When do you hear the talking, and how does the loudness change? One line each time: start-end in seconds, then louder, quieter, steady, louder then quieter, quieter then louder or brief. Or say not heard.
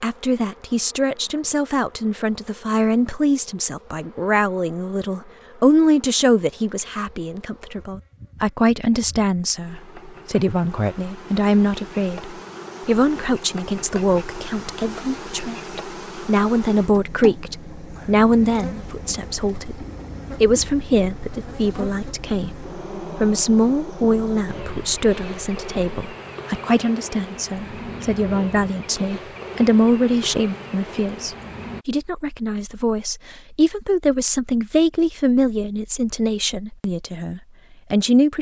0.0-38.3 steady.